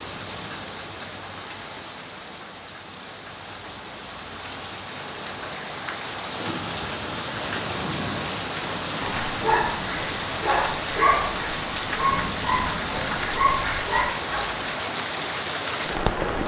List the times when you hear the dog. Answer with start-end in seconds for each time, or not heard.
9.0-14.6.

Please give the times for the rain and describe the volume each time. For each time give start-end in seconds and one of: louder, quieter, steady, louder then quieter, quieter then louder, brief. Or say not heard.
0.0-16.4 louder.